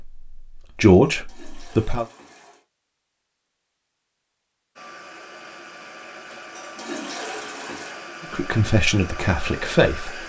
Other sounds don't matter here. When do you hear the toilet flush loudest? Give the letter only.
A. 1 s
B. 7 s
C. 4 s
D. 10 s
B.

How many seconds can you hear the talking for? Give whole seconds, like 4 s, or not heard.
4 s.